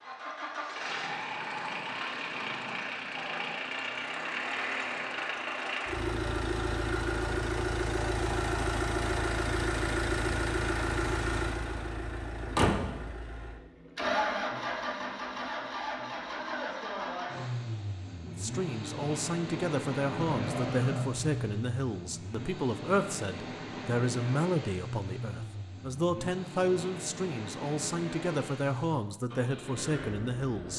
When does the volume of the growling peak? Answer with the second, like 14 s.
21 s.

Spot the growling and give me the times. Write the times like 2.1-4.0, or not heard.
0.8-3.6, 20.1-21.4.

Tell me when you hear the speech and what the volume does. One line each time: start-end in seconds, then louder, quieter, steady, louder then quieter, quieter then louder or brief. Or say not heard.
18.2-30.7 steady.